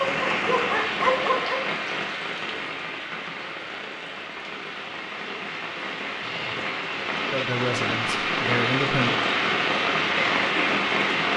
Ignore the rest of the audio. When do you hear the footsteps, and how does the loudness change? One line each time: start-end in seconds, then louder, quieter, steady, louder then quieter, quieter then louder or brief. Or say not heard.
not heard.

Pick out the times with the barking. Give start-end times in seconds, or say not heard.
0.0-1.6.